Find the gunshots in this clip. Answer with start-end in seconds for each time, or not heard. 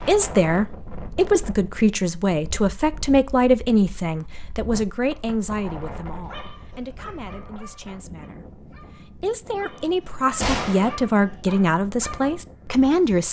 10.4-10.9.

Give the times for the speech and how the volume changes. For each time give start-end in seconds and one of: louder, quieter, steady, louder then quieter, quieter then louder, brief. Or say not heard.
0.0-13.2 quieter then louder.